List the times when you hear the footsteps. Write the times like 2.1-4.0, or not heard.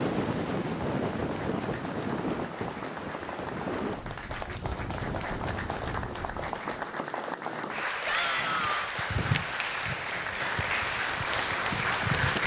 not heard.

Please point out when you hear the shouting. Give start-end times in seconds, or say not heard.
8.1-8.8.